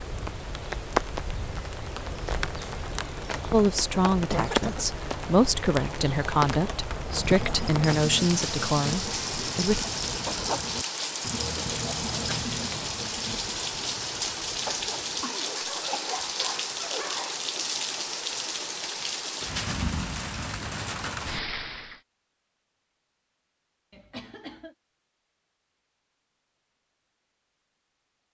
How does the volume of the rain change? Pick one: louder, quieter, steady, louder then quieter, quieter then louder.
steady.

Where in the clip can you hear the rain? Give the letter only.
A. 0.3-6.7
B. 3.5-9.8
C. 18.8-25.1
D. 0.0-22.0
D.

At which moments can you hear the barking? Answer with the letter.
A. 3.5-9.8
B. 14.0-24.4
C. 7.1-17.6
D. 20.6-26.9
C.